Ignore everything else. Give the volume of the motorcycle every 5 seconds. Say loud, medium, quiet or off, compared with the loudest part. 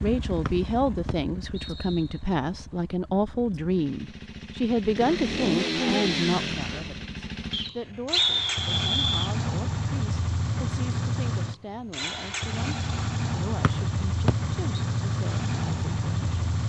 medium, loud, loud, loud.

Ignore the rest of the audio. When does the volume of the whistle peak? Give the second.
8 s.